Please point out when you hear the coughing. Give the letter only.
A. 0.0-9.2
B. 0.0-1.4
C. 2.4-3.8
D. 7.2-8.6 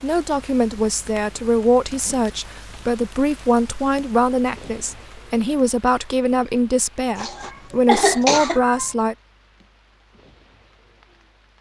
D.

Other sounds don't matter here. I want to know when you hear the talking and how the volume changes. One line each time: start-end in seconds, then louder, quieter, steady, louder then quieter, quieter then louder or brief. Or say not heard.
0.0-9.2 steady.